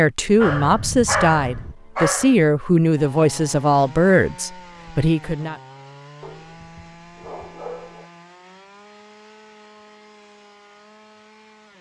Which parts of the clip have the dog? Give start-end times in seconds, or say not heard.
0.4-2.4, 6.2-8.1.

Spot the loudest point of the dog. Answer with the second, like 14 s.
1 s.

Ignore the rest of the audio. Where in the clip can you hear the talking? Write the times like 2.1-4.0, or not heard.
0.0-5.5.